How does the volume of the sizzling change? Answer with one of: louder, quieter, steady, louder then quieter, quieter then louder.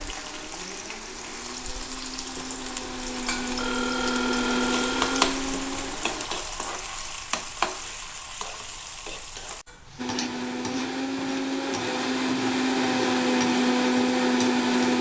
louder then quieter.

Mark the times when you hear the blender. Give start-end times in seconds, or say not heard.
0.0-6.3, 9.9-14.9.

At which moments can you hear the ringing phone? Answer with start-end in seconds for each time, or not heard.
3.5-5.3.